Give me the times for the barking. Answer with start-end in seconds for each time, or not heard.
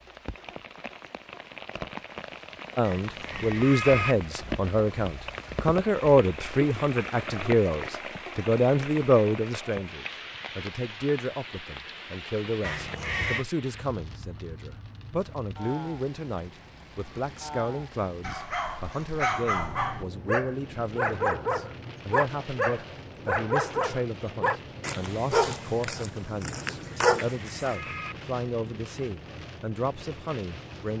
18.2-27.8.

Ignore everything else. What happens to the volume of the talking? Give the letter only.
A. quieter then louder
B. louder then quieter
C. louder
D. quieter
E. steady
D.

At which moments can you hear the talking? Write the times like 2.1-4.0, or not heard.
2.8-30.9.